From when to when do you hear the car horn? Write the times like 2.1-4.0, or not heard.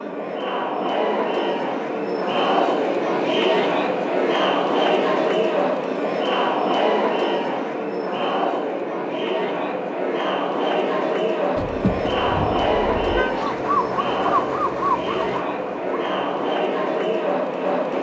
11.6-13.3.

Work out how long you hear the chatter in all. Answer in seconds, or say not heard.
18 s.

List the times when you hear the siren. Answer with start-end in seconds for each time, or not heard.
13.3-16.6.